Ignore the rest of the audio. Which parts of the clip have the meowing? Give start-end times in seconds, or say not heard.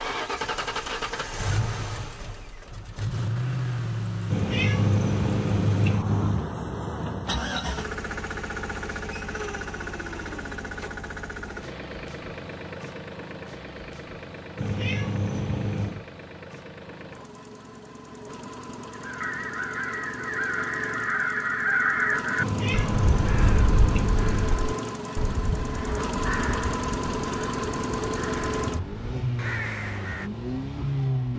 4.3-6.5, 14.6-16.1, 22.4-24.5.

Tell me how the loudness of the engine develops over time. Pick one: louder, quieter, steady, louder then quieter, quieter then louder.
quieter then louder.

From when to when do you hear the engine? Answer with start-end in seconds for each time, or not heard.
0.0-31.3.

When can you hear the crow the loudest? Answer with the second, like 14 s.
22 s.